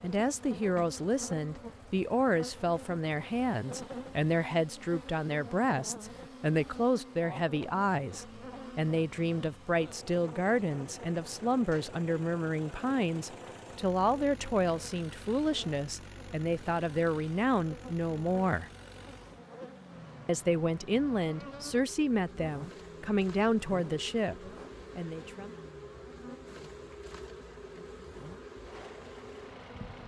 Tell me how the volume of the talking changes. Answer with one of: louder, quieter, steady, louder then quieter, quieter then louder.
steady.